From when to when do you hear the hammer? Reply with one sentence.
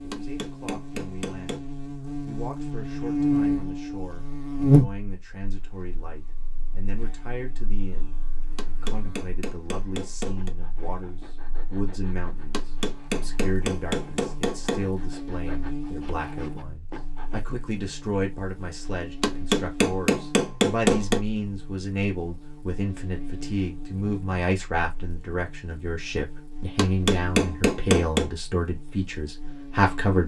You can hear the hammer from 0.1 to 1.6 s, from 8.6 to 10.6 s, from 12.5 to 14.8 s, from 19.2 to 21.2 s and from 26.8 to 28.3 s.